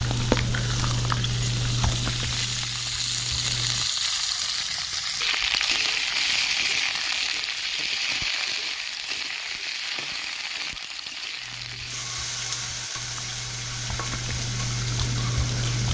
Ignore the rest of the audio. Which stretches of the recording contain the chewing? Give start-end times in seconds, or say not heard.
0.0-3.9, 11.3-15.9.